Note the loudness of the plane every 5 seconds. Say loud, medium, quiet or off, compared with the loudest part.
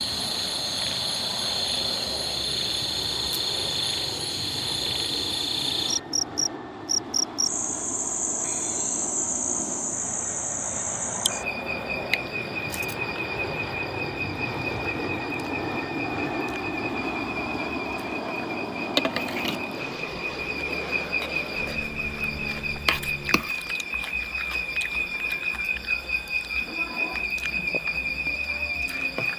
medium, medium, loud, loud, medium, off.